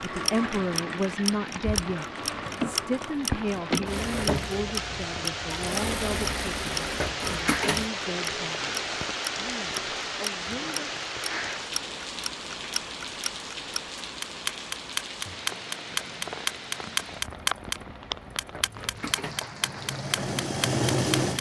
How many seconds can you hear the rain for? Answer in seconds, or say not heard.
21 s.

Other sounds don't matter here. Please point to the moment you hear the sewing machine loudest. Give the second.
21 s.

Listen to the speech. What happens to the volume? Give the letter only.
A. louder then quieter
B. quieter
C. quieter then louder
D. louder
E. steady
B.